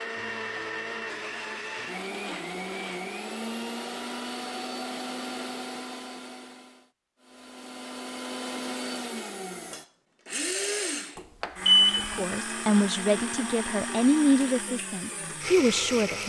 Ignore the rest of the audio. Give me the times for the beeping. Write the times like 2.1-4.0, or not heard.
11.2-12.2.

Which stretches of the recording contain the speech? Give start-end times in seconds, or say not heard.
12.2-16.2.